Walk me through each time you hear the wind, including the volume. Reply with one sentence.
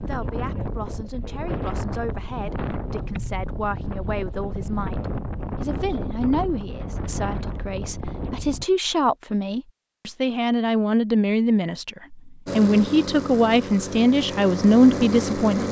You can hear the wind from 0.0 to 8.7 s, at a steady volume.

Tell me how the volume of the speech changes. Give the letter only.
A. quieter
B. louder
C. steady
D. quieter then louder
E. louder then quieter
B.